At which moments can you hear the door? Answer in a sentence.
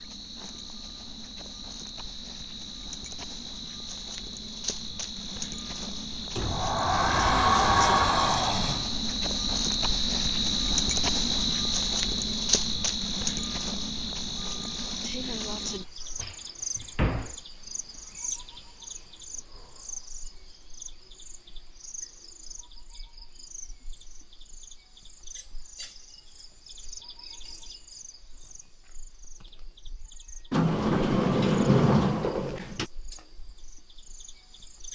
You can hear the door from 6.3 to 8.9 s, from 16.1 to 17.4 s and from 30.5 to 32.9 s.